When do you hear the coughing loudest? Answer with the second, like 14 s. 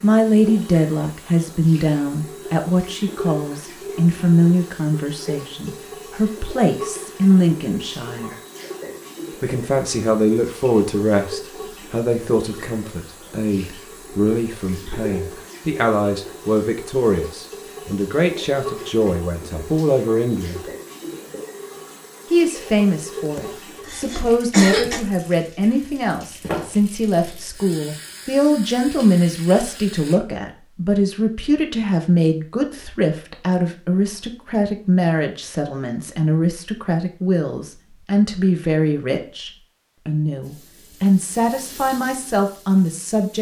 25 s.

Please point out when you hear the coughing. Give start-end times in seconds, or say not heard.
23.2-25.0.